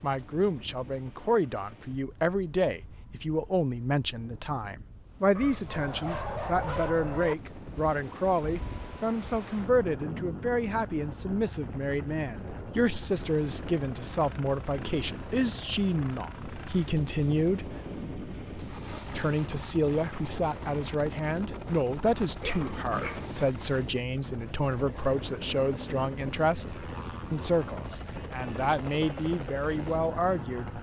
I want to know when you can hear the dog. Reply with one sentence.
You can hear the dog from 5.3 to 7.3 s and from 22.4 to 24.0 s.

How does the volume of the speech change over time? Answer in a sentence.
The loudness of the speech stays about the same.